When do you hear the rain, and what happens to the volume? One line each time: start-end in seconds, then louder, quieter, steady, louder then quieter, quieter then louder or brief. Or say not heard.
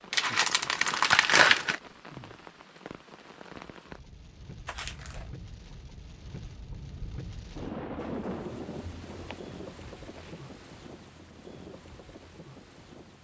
0.0-13.1 louder then quieter.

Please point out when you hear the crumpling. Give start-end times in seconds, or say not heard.
0.1-1.8, 4.7-5.3, 9.2-10.4.